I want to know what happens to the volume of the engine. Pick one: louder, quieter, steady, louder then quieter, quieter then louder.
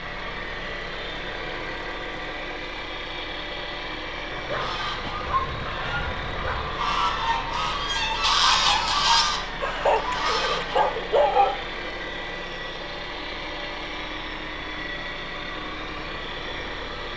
steady.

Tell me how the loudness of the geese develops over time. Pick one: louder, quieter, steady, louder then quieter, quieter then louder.
louder then quieter.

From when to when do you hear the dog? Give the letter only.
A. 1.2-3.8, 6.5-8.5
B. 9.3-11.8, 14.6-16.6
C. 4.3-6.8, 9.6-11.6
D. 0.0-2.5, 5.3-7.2
C.